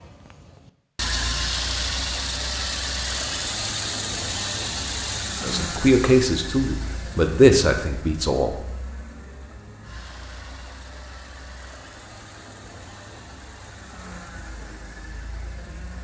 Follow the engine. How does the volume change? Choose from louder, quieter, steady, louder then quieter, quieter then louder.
quieter.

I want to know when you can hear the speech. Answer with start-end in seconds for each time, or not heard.
5.4-8.6.